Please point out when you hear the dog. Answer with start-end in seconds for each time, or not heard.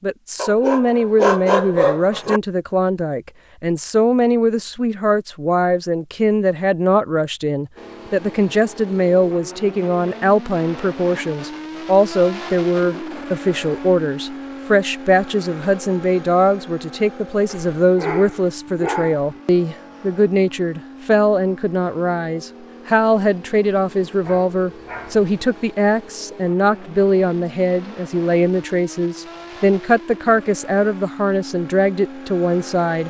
0.3-2.4, 17.4-19.4, 24.2-25.2.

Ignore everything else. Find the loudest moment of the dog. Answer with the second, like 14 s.
1 s.